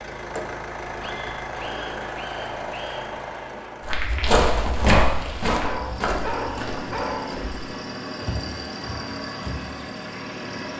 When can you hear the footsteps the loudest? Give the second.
5 s.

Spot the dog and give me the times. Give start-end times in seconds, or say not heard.
1.0-3.2, 5.6-7.5.